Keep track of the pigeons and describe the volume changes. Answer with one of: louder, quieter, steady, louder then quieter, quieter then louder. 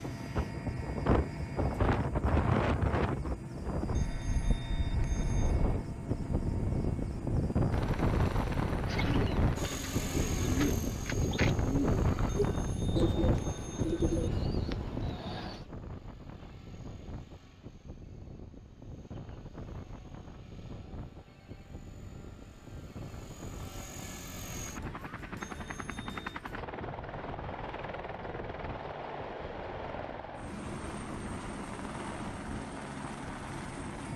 louder then quieter.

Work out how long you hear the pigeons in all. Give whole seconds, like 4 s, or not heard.
7 s.